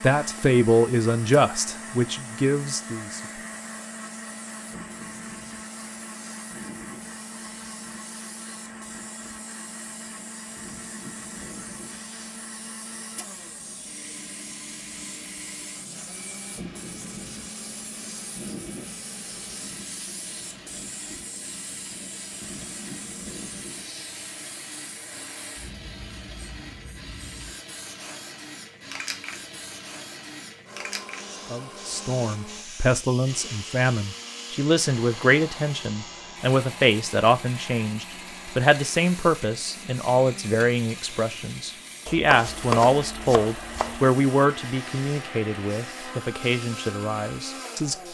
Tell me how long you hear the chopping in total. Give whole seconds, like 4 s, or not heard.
2 s.